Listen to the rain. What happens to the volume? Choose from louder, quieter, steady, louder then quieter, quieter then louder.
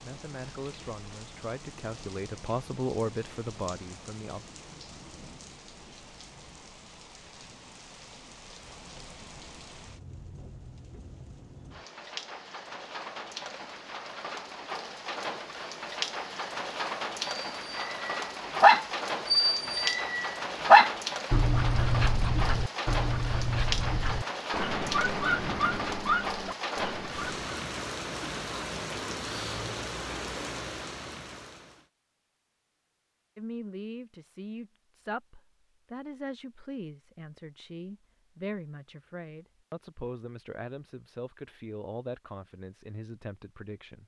louder.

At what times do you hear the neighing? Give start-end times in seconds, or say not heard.
not heard.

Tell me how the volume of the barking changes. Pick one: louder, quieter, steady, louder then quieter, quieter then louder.
quieter.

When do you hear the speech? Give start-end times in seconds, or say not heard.
0.0-4.5, 33.4-44.0.